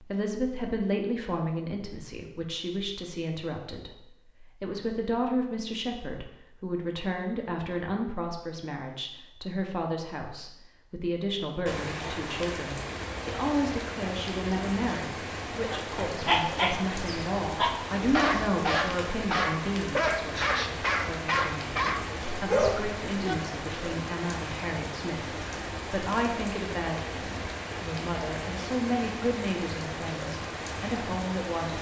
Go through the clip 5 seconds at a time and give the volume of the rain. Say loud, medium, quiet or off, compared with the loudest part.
off, off, loud, loud, loud, loud, loud.